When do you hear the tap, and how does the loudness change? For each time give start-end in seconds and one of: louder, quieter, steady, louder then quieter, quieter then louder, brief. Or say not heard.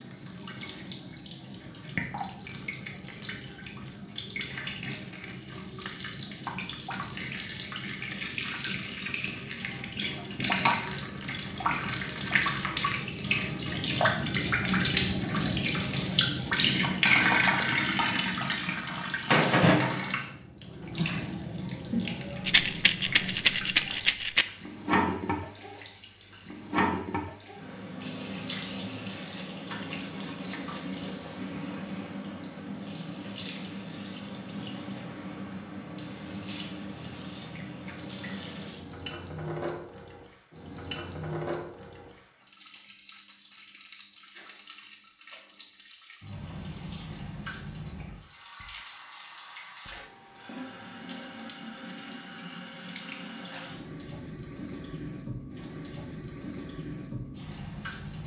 0.0-58.2 louder then quieter.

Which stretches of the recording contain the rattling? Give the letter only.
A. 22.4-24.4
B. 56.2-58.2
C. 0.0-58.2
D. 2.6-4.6
A.